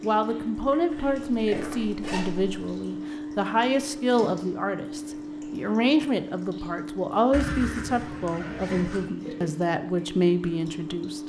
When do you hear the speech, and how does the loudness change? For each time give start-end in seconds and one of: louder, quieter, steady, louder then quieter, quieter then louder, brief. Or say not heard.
0.0-11.2 steady.